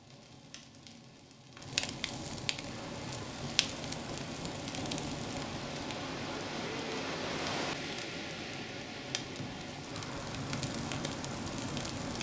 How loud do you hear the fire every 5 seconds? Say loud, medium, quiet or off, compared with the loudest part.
loud, medium, loud.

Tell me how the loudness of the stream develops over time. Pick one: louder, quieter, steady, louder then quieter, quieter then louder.
louder then quieter.